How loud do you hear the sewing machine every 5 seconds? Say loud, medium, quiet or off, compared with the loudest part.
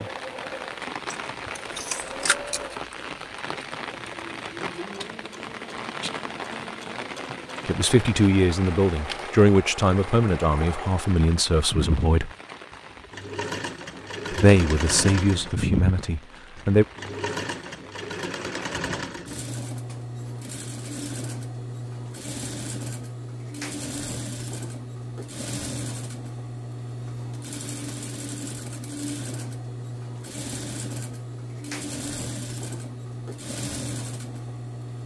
medium, medium, loud, loud, loud, loud, loud.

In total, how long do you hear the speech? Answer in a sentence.
You can hear the speech for 7 seconds altogether.